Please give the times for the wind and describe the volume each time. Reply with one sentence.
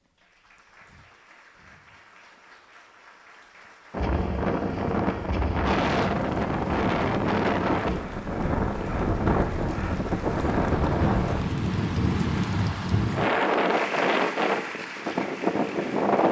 You can hear the wind from 3.9 to 16.2 s, at a steady volume.